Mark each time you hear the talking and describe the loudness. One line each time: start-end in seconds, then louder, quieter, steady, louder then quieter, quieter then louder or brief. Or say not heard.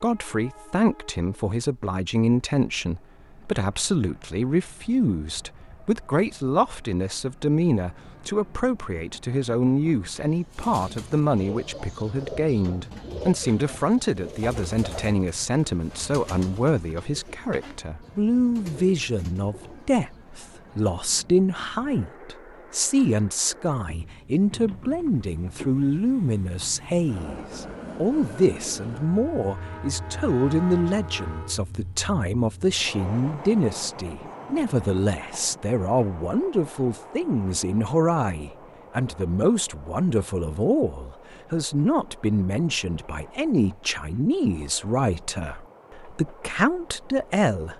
0.0-47.7 steady.